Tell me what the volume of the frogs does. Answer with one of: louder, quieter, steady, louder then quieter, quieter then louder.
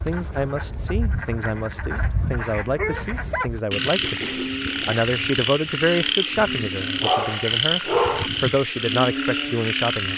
louder.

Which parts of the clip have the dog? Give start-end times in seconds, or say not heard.
1.9-3.5, 6.8-8.3.